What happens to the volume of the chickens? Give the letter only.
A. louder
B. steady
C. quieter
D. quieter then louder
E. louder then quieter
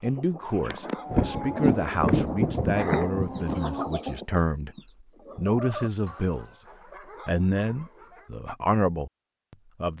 E.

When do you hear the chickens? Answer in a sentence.
The chickens can be heard from 0.0 to 6.6 s.